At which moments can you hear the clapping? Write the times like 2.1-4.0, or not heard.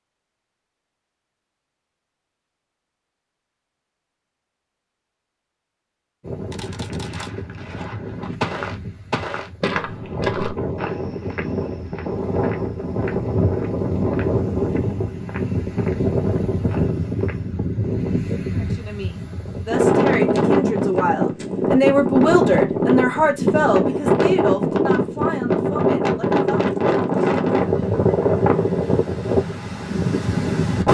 not heard.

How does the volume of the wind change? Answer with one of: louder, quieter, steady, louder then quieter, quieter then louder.
louder.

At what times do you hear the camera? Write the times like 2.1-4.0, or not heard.
6.5-7.3.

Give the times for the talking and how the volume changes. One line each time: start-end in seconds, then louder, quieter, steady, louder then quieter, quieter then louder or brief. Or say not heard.
18.6-26.8 louder then quieter.